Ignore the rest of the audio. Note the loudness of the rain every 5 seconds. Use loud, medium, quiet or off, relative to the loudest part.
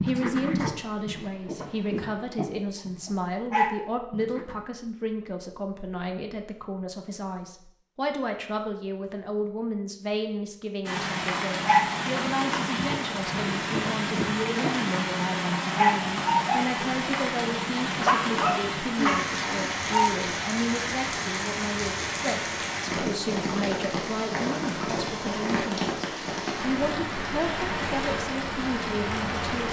off, off, loud, loud, loud, loud.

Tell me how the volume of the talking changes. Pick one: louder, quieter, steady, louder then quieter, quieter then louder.
steady.